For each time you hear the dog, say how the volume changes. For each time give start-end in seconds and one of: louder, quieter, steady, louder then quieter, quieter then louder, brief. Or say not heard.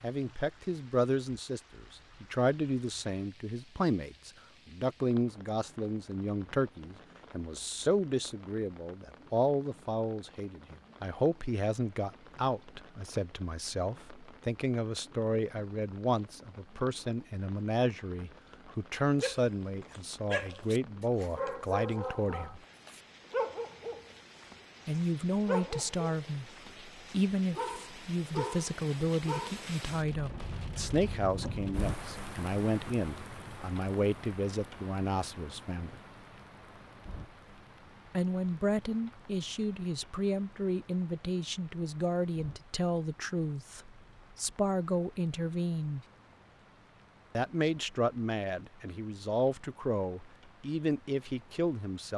18.6-29.6 steady.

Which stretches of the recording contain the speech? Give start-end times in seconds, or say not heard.
0.0-22.6, 24.9-36.0, 38.1-46.0, 47.4-52.1.